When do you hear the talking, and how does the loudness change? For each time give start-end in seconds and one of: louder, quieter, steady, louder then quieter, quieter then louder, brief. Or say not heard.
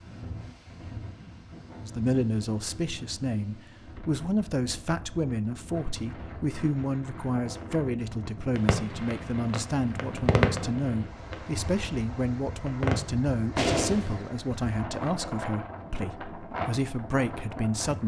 1.8-18.0 steady.